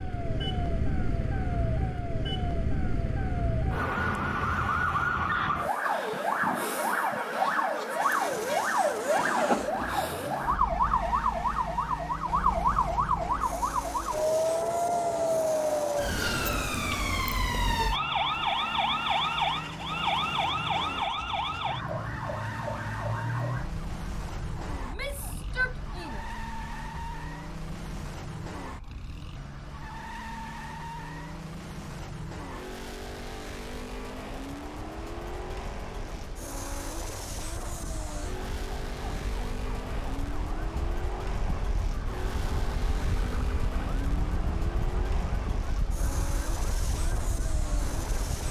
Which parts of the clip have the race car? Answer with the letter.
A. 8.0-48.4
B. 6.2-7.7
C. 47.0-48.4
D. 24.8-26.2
A.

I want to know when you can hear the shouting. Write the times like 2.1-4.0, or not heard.
24.8-26.2.